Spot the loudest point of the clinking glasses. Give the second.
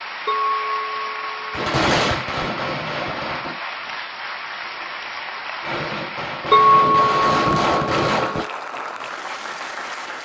7 s.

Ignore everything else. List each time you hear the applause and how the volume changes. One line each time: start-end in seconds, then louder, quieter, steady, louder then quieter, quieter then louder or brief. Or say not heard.
0.0-10.2 steady.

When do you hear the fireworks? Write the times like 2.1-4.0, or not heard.
1.5-3.6, 5.6-8.5.